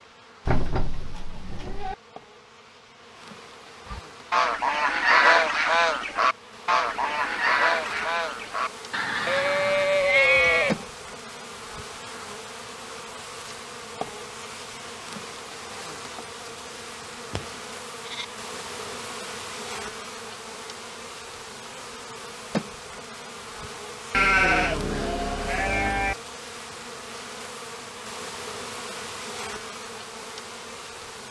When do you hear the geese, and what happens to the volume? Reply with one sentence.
You can hear the geese from 3.9 to 10.1 s, getting quieter.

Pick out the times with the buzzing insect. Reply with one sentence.
The buzzing insect can be heard from 0.0 to 31.2 s.